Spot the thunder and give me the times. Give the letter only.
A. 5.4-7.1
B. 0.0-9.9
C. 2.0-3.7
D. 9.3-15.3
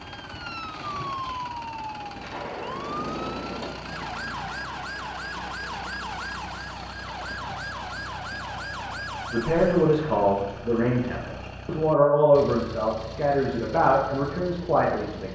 C.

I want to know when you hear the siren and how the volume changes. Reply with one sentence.
You can hear the siren from 0.0 to 9.9 s, at a steady volume.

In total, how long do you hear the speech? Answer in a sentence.
You can hear the speech for 6 seconds altogether.